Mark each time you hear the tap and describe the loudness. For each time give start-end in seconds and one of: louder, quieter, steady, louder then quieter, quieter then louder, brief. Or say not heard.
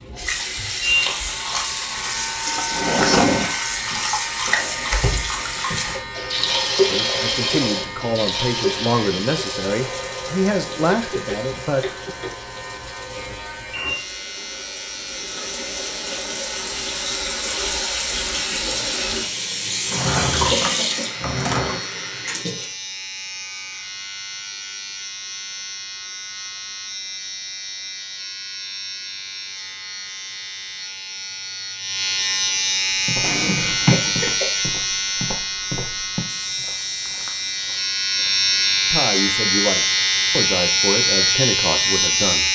0.0-22.8 quieter then louder.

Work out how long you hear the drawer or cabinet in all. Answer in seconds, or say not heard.
4 s.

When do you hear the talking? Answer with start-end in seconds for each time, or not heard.
6.9-12.2, 38.9-42.4.